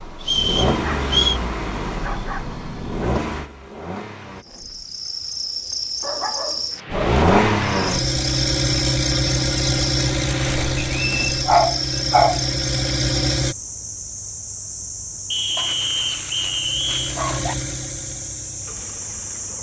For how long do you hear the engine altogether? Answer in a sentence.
You can hear the engine for 15 seconds altogether.